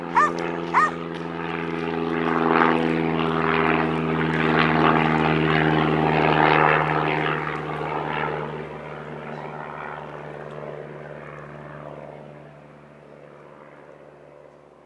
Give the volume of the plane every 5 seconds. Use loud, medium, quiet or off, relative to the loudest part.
loud, loud, quiet.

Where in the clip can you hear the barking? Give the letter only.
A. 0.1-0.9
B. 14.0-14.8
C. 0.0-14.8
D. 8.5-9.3
A.